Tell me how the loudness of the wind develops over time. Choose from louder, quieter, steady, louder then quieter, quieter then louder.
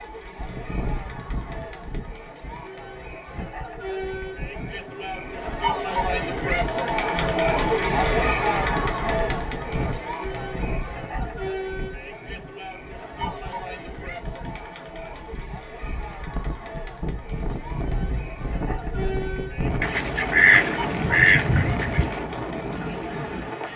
louder.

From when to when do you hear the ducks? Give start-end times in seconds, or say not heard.
19.8-22.2.